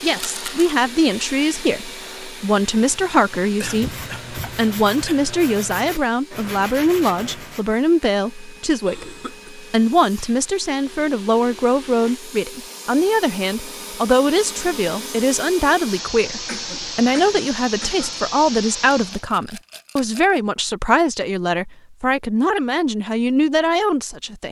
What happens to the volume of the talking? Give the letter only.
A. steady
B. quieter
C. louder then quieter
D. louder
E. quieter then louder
A.